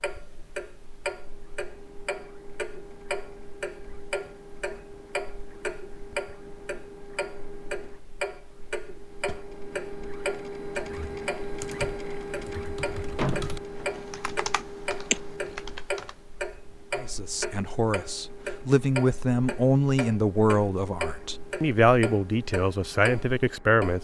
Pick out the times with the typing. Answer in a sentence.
The typing can be heard from 10.8 to 16.1 s.